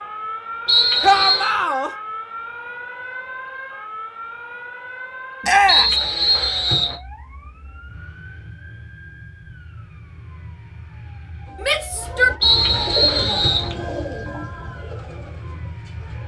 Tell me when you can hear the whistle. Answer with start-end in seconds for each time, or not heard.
0.7-1.6, 5.7-7.0, 12.4-13.7.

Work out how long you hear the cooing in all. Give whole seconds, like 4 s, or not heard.
5 s.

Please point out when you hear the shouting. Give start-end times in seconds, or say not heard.
1.0-1.9, 5.4-6.0, 11.6-12.3.